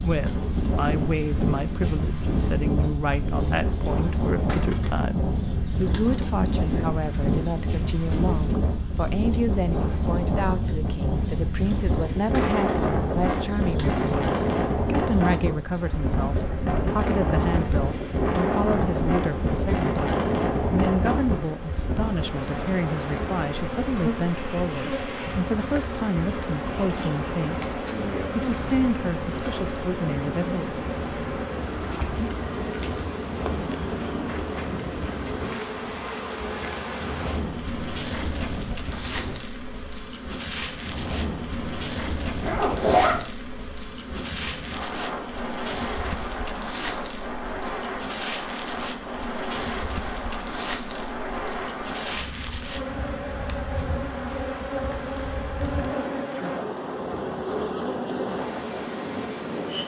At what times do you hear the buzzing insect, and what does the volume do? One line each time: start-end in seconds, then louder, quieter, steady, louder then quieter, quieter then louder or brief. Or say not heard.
0.0-59.8 louder.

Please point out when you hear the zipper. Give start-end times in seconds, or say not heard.
42.4-43.2.